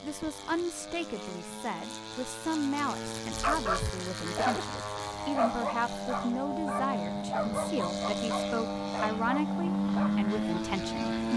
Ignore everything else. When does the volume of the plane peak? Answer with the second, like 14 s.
10 s.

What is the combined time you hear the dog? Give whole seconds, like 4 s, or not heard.
7 s.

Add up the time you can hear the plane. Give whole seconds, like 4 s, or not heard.
11 s.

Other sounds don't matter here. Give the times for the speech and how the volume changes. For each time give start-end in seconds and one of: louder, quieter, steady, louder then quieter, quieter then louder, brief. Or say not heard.
0.0-11.3 steady.